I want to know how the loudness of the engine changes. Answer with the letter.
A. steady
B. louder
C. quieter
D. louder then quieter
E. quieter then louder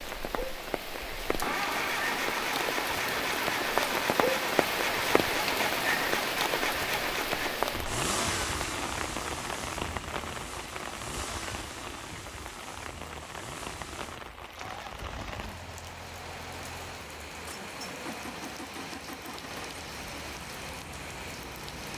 C.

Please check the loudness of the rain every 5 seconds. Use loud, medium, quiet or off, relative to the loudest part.
loud, loud, medium, medium, medium.